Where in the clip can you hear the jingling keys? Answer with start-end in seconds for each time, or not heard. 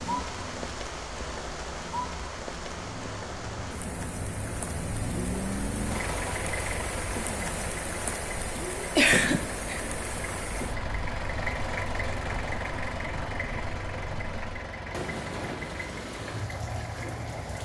not heard.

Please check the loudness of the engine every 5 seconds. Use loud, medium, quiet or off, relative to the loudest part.
medium, loud, loud, medium.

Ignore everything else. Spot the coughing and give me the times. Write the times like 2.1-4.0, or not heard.
8.9-9.9.